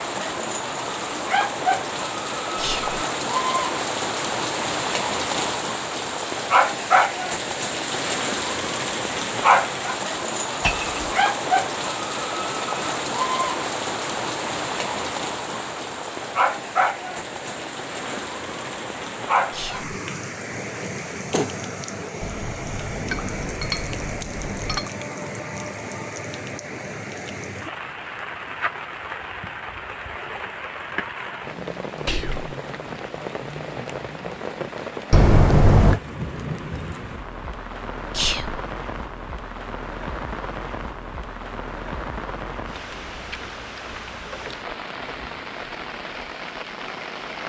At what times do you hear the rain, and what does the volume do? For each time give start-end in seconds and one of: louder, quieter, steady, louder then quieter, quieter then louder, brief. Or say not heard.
0.0-47.4 quieter.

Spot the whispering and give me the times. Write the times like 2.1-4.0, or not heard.
2.5-3.0, 19.5-19.9, 32.0-32.5, 38.1-38.6.